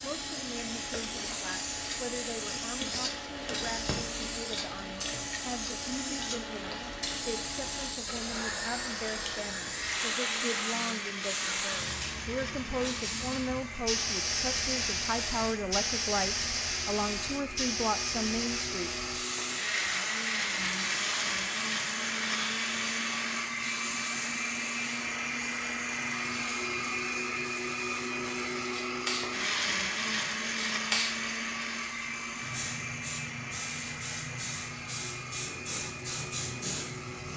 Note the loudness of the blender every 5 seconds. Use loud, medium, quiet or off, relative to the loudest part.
medium, medium, medium, medium, loud, loud, loud, medium.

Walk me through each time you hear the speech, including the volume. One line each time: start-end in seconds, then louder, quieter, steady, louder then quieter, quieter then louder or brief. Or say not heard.
0.0-18.9 louder.